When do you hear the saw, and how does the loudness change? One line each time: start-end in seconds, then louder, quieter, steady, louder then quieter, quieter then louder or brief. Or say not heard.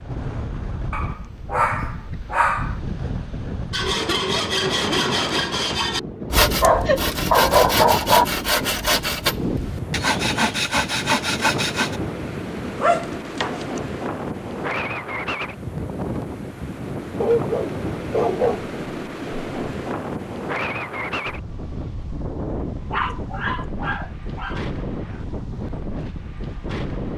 3.7-12.0 steady.